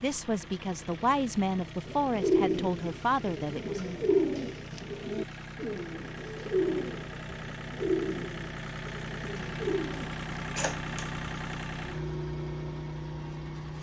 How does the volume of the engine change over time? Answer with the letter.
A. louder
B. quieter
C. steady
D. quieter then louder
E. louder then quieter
A.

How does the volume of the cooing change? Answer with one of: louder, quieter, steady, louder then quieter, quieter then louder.
quieter.